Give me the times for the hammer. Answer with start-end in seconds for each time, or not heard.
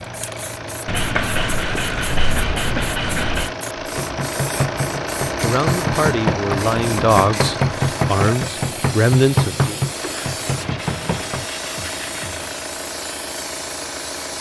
4.0-11.4.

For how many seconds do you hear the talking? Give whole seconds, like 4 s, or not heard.
4 s.